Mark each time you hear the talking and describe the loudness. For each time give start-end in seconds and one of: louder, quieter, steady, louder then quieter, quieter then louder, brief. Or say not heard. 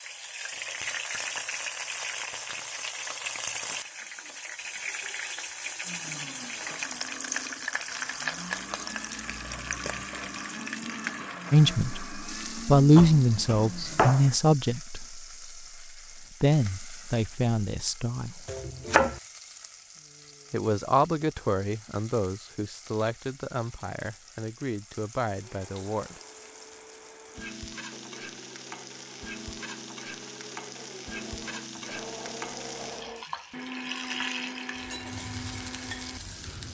11.5-18.4 quieter
20.5-26.2 quieter.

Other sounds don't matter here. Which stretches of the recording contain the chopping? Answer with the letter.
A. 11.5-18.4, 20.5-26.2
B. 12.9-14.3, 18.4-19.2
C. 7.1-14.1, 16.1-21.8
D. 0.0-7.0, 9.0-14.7
B.